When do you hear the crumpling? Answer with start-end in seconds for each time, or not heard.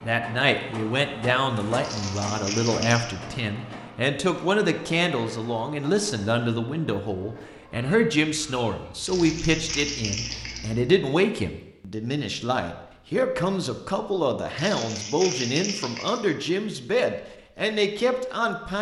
1.8-3.1, 9.1-10.7, 14.6-16.2.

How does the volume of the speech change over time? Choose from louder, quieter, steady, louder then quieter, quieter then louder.
steady.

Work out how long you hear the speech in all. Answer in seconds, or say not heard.
19 s.